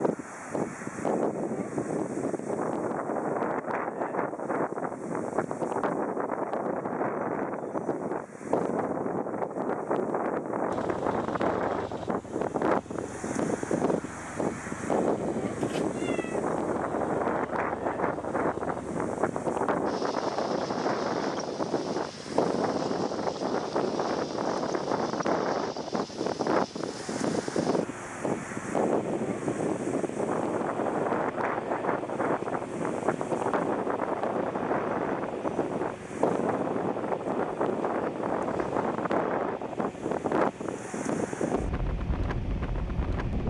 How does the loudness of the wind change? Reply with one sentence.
The loudness of the wind stays about the same.